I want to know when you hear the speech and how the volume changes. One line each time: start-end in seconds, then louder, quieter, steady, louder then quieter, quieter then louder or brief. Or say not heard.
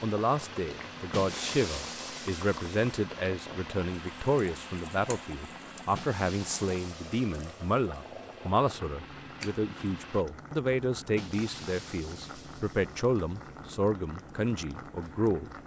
0.0-15.5 steady.